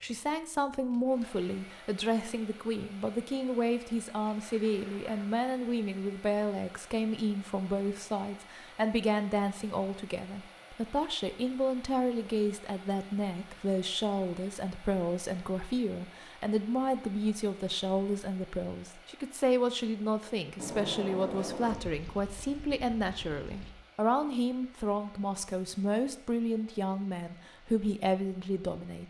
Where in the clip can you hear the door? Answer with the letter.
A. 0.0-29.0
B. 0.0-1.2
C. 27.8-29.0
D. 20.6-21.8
D.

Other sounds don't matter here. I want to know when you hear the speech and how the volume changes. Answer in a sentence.
The speech can be heard from 0.0 to 29.0 s, at a steady volume.